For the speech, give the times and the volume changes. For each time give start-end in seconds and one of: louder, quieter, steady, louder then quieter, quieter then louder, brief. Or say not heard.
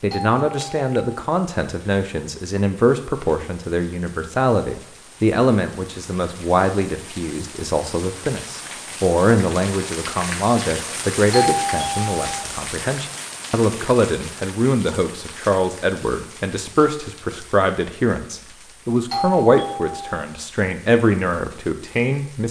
0.0-22.4 steady.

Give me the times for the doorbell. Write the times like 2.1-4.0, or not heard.
0.1-1.1, 11.3-12.4, 19.1-20.2.